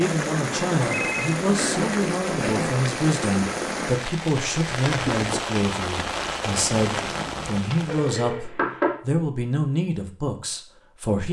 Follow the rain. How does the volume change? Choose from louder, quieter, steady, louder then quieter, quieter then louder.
steady.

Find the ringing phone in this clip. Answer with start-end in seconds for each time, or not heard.
0.8-1.4, 7.7-8.5.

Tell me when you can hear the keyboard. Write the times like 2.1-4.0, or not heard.
not heard.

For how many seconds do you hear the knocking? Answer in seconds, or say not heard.
2 s.